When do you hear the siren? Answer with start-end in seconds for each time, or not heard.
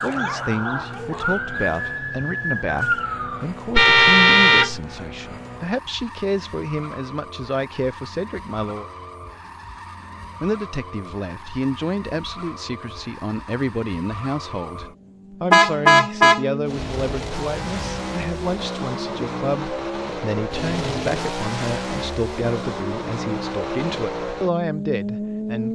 0.0-3.5.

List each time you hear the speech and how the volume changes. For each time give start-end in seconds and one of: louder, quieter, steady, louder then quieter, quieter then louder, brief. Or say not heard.
0.0-8.8 steady
10.4-25.6 steady.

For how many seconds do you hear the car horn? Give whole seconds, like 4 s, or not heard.
4 s.